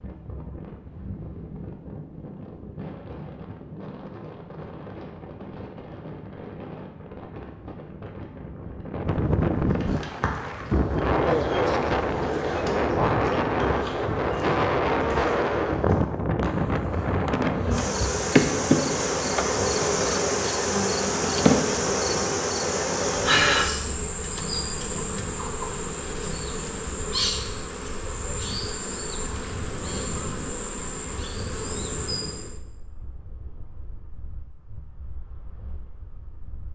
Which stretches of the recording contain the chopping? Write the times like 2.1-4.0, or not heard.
not heard.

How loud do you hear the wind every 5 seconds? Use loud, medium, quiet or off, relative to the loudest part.
quiet, medium, loud, loud, quiet, quiet, quiet, quiet.